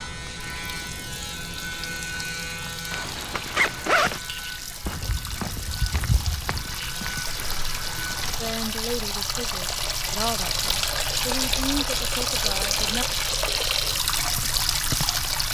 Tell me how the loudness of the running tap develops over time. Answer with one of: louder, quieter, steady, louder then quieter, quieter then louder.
louder.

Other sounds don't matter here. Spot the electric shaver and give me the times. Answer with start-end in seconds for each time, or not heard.
0.0-8.6.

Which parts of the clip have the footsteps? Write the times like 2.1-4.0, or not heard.
4.8-8.4, 14.3-15.2.